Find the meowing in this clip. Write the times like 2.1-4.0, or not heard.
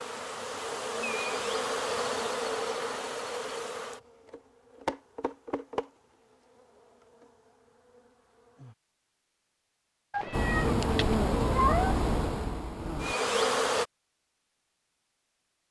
10.1-11.9.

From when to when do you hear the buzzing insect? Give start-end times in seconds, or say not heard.
0.0-8.8, 10.3-13.8.